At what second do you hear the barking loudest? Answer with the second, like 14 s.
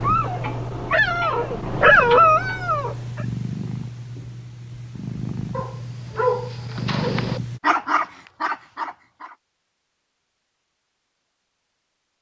2 s.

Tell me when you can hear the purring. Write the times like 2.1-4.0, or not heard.
0.0-7.6.